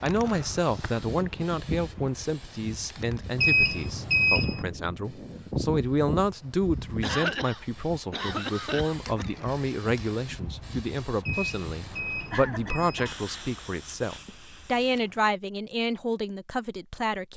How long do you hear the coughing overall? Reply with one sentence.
You can hear the coughing for 4 seconds altogether.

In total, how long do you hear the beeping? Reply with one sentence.
You can hear the beeping for 3 seconds altogether.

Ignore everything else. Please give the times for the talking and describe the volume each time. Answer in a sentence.
The talking can be heard from 0.0 to 17.3 s, at a steady volume.